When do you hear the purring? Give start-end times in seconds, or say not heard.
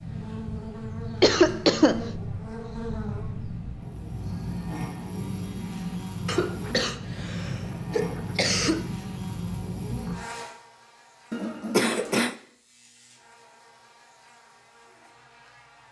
0.0-10.2.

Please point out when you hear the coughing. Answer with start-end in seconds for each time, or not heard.
1.2-2.0, 6.2-8.8, 11.3-12.3.